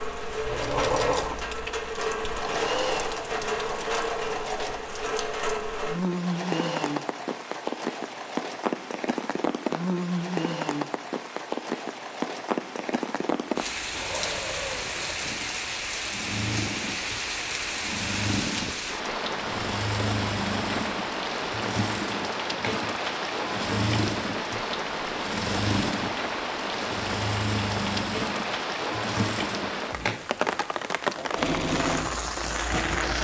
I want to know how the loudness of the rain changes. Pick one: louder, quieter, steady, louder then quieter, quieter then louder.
steady.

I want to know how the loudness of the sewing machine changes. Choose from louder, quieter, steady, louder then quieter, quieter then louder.
quieter then louder.